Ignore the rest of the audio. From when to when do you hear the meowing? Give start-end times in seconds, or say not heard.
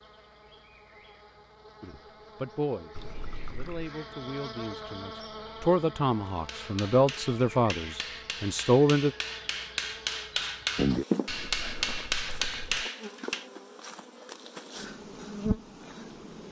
not heard.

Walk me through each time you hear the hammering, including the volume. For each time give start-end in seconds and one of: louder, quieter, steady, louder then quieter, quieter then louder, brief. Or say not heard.
6.3-13.4 louder.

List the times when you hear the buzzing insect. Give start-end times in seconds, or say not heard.
0.0-16.4.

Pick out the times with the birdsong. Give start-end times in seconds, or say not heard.
not heard.